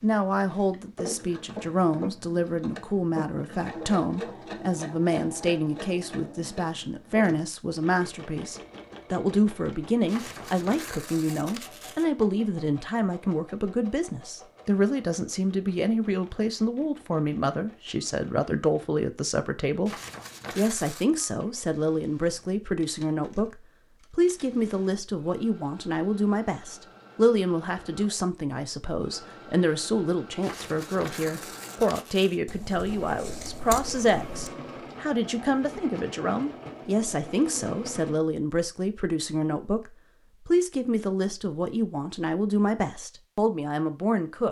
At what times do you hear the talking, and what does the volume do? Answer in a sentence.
The talking can be heard from 0.0 to 44.4 s, at a steady volume.